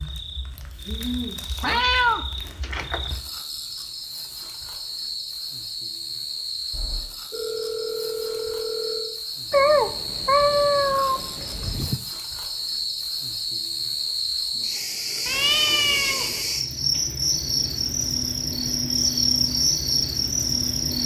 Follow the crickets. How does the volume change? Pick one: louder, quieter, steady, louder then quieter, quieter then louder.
louder.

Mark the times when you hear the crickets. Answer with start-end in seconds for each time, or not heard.
0.0-21.0.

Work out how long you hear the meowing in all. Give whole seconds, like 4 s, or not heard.
5 s.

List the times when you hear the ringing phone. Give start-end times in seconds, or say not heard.
6.7-9.2.